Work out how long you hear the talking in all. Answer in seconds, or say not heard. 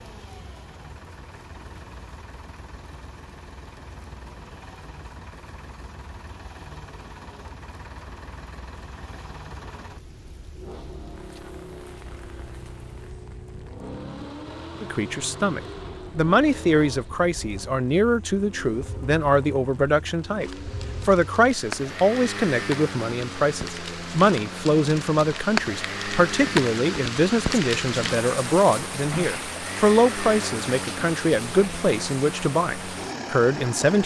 19 s.